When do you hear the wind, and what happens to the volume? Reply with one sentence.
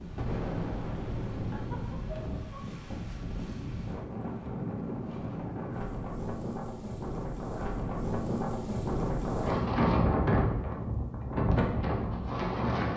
The wind can be heard from 0.0 to 12.9 s, getting louder.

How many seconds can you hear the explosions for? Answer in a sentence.
You can hear the explosions for 2 seconds altogether.